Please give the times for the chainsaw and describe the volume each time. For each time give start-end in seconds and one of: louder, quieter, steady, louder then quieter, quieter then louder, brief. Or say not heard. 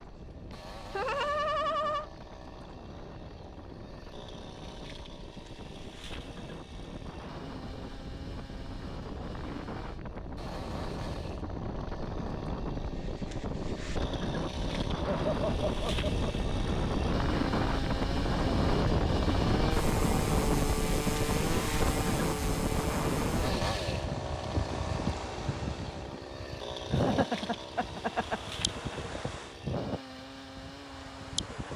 0.0-31.7 louder then quieter.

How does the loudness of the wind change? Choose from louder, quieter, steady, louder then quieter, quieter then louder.
louder then quieter.